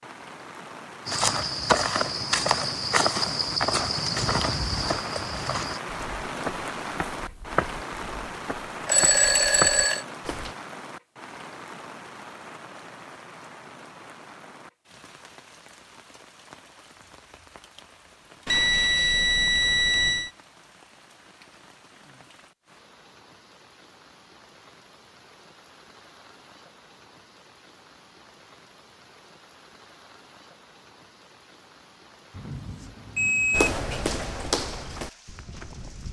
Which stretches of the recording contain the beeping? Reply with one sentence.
You can hear the beeping from 8.8 to 10.1 s, from 18.4 to 20.3 s and from 32.4 to 33.8 s.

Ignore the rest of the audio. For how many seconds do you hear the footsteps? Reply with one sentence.
You can hear the footsteps for 12 seconds altogether.